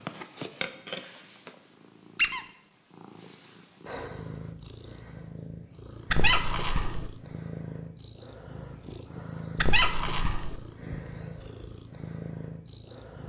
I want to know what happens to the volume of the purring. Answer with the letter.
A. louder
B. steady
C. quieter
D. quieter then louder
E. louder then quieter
B.